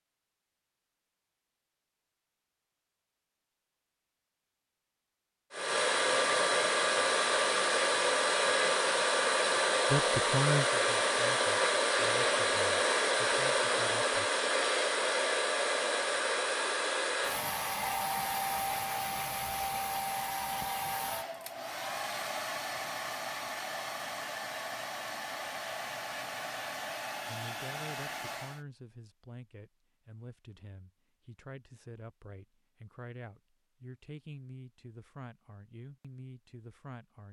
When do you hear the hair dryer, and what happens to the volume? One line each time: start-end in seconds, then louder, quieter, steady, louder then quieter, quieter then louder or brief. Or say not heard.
5.5-28.6 quieter.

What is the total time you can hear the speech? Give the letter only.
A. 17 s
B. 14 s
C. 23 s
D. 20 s
B.